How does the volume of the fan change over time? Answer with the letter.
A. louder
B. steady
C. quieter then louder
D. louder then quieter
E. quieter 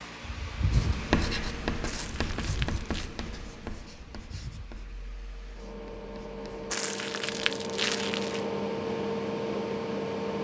C.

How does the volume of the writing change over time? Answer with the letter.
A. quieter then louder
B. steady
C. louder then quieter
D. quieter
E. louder
D.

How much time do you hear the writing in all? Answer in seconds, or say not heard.
6 s.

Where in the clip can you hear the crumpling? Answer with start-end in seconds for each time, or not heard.
1.9-3.1, 6.7-8.4.